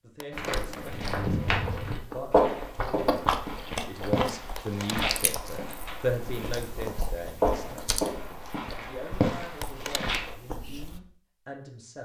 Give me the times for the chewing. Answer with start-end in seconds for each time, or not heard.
0.3-11.0.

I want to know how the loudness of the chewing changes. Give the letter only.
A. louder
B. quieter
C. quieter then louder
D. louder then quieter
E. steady
D.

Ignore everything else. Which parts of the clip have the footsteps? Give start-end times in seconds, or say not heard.
0.3-10.3.